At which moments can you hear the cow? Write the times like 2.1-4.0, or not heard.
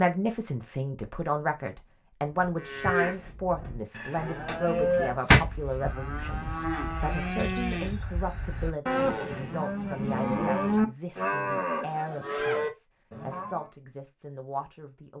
2.4-13.7.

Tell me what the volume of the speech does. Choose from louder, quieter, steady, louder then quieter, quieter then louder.
quieter.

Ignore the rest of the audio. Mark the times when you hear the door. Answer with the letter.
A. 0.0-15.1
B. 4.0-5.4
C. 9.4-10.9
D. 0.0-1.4
B.